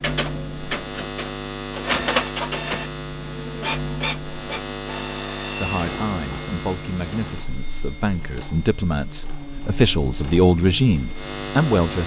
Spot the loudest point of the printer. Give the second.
2 s.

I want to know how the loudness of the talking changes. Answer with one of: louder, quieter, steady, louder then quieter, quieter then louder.
louder.